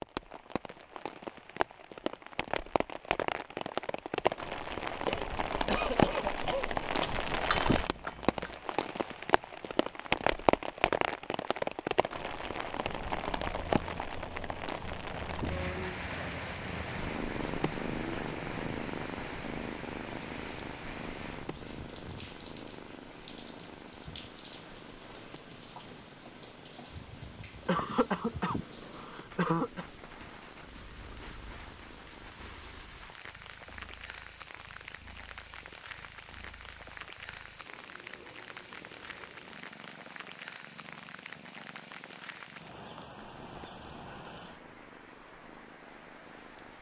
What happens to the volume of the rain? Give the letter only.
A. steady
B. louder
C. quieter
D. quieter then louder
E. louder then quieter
C.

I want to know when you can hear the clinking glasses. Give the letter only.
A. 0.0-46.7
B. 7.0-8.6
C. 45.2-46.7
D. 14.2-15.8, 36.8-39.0
B.